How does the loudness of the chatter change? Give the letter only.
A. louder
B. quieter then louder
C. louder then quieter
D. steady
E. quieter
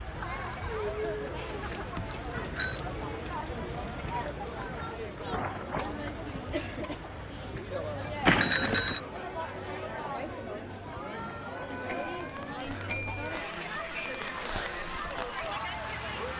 D.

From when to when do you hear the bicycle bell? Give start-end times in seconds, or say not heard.
1.4-2.8, 8.2-9.0, 11.7-14.5.